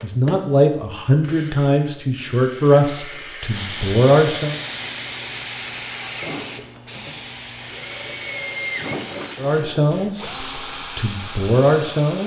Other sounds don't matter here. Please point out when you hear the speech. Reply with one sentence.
The speech can be heard from 0.0 to 4.5 s and from 9.3 to 12.2 s.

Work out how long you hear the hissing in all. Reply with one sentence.
The hissing can be heard for 7 seconds in total.